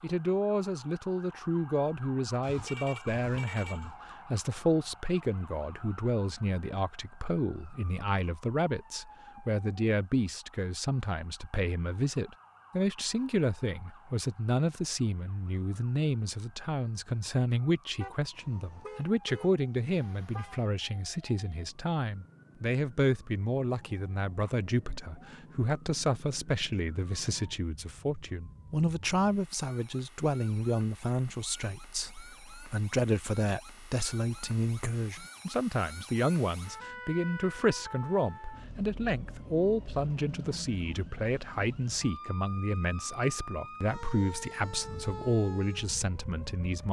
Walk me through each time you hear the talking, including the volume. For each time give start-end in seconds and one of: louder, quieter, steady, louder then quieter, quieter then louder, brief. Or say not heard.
0.0-46.8 steady.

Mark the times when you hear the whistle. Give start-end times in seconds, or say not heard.
not heard.